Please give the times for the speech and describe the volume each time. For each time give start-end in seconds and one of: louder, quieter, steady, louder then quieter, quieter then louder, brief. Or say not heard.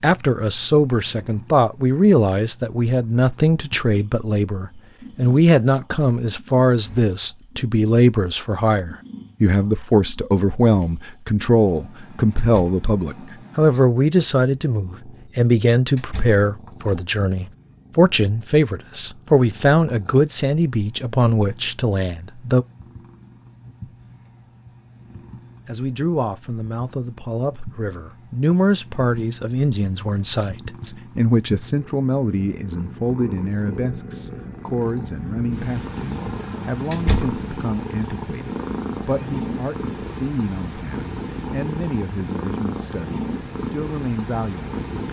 0.0-22.6 steady
25.6-44.8 quieter.